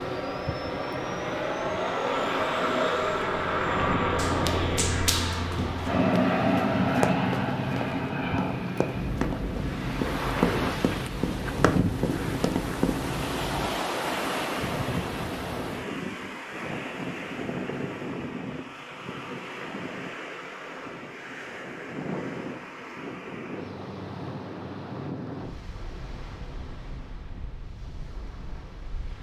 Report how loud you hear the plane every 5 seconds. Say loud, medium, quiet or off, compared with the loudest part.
loud, loud, medium, off, off, off.